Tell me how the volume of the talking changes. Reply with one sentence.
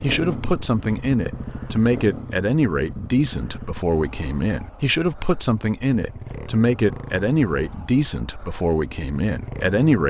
The volume of the talking stays about the same.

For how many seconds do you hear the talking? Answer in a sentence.
You can hear the talking for 10 seconds altogether.